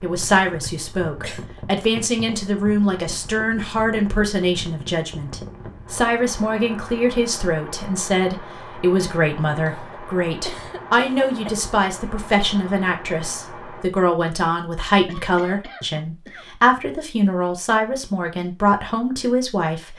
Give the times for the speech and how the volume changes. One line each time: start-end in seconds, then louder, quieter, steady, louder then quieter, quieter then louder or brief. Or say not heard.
0.0-19.9 steady.